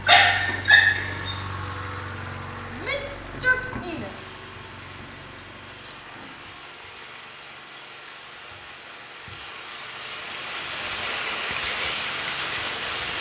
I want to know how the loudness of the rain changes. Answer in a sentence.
The volume of the rain goes up.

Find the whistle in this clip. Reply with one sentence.
You can't hear the whistle here.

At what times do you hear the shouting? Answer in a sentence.
The shouting can be heard from 2.7 to 4.1 s.